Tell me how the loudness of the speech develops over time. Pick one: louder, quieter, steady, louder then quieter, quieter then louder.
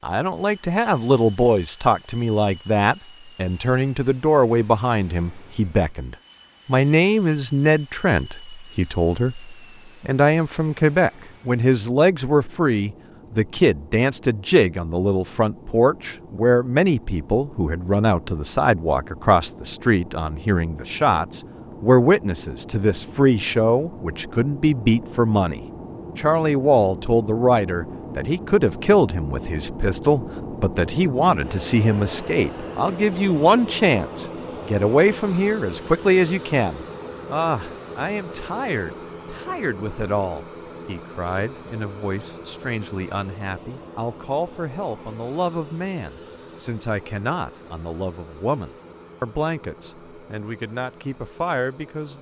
quieter.